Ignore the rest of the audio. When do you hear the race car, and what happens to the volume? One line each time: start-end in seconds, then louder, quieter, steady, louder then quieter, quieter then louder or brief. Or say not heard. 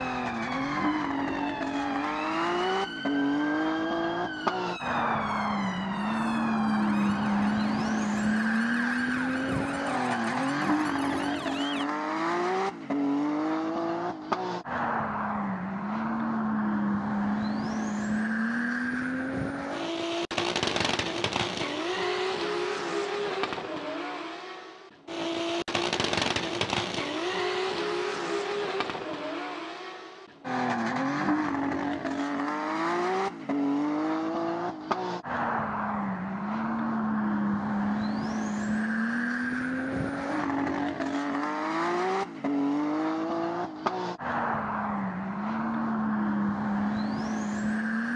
0.0-48.1 steady.